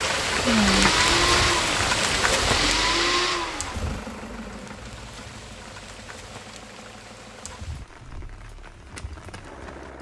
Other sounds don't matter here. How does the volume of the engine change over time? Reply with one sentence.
The loudness of the engine goes down.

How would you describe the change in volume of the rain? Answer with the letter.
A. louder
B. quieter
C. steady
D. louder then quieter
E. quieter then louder
B.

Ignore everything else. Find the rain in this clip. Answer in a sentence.
You can hear the rain from 0.0 to 9.9 s.